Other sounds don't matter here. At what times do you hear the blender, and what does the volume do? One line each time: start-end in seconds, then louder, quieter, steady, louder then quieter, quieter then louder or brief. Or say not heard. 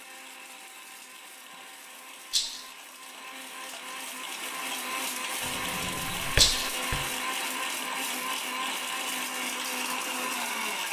0.0-10.8 louder.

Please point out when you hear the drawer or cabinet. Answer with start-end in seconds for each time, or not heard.
5.4-7.1.